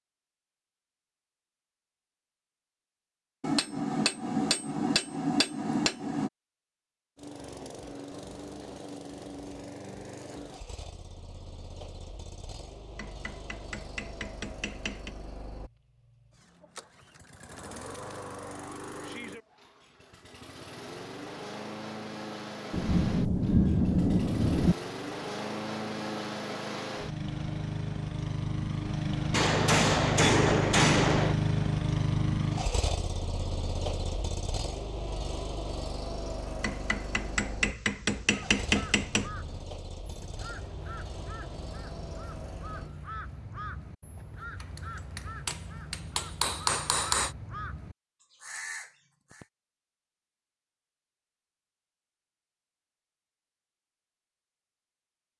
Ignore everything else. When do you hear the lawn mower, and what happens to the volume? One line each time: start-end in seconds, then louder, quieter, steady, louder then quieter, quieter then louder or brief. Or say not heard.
7.2-43.0 louder then quieter.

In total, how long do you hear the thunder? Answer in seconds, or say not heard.
2 s.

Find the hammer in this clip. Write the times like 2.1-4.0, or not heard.
3.4-6.3, 12.9-15.2, 29.3-31.4, 36.6-39.2, 45.1-47.3.